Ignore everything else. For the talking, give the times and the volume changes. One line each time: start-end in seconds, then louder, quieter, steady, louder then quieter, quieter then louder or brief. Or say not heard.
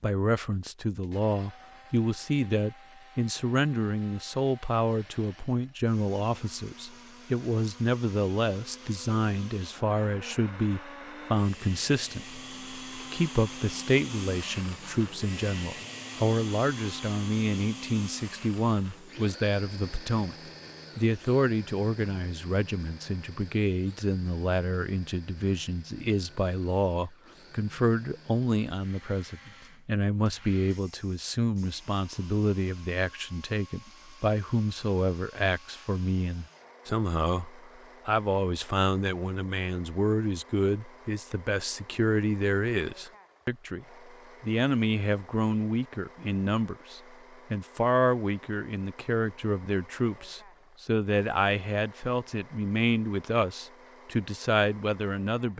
0.0-20.4 steady
20.9-55.5 steady.